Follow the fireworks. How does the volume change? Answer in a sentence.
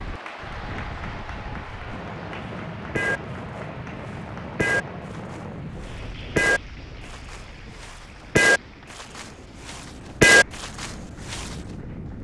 The loudness of the fireworks goes up.